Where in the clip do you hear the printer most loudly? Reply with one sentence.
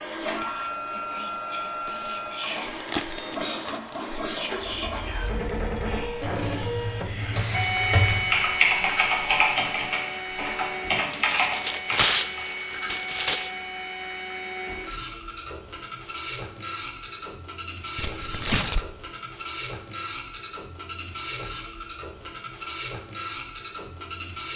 The volume of the printer peaks at 8 seconds.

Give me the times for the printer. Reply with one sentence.
The printer can be heard from 0.0 to 24.5 s.